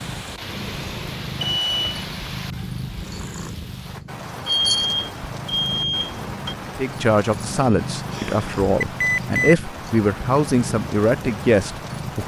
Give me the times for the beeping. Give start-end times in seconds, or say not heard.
1.4-2.0, 4.5-6.5, 8.8-9.6.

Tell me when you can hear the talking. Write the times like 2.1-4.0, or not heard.
6.7-12.2.